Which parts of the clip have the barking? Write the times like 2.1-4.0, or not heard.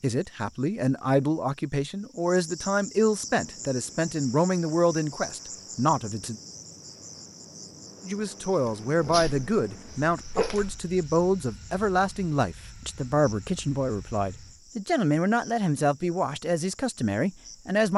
8.7-10.8.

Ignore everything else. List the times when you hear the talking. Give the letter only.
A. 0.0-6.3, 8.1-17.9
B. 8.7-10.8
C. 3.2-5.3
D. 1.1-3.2
A.